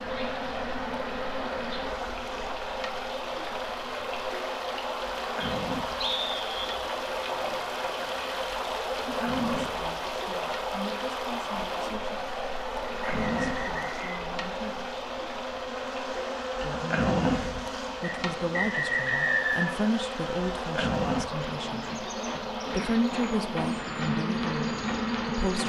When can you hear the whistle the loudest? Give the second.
19 s.